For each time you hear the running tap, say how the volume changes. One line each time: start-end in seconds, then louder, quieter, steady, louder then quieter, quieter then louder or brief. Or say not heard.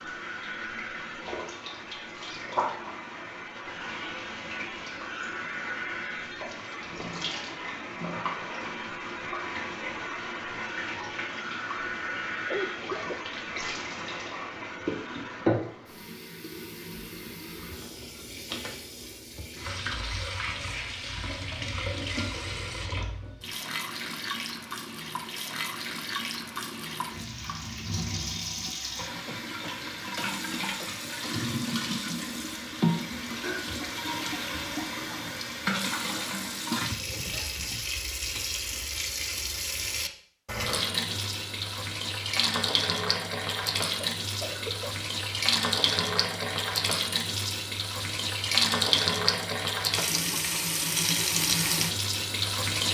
0.0-52.8 louder.